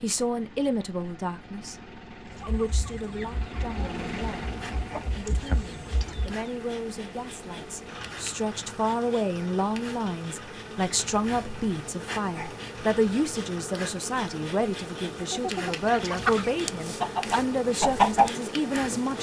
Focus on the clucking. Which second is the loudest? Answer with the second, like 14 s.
18 s.